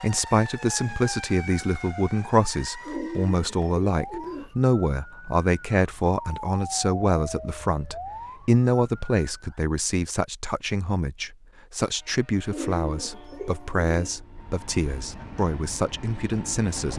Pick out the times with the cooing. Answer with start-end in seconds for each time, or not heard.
2.8-4.5, 12.4-14.2.